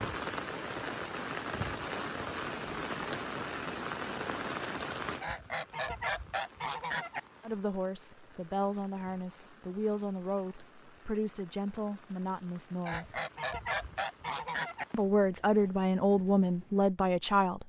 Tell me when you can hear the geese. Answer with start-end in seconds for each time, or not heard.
5.2-7.2, 12.8-14.8.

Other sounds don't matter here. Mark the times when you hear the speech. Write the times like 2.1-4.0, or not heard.
7.4-13.2, 14.9-17.6.